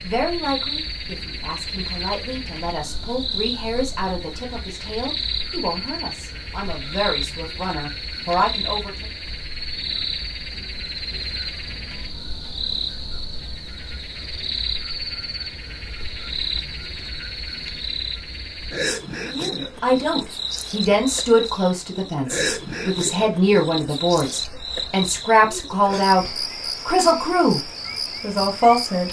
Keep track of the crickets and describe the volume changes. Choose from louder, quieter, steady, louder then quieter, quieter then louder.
steady.